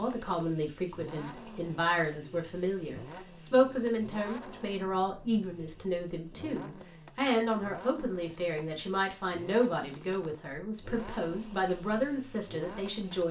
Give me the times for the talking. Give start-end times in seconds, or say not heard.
0.0-13.2.